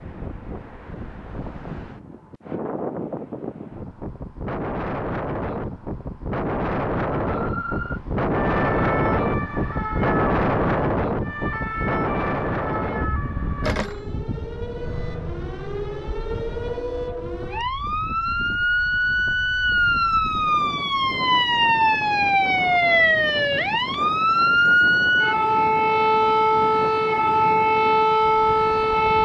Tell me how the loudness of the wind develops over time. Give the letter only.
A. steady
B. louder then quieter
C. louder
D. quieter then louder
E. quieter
B.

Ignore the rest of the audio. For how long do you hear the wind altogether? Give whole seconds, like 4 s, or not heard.
29 s.